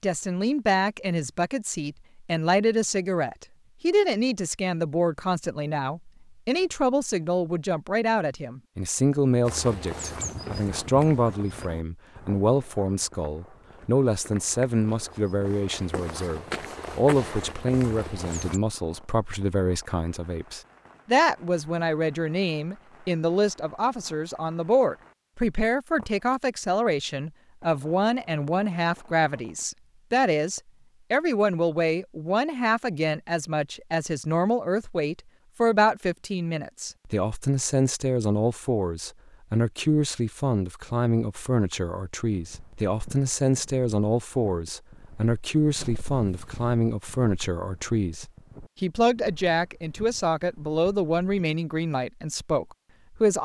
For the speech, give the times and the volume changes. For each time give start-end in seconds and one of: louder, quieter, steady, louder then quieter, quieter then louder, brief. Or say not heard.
0.0-53.4 steady.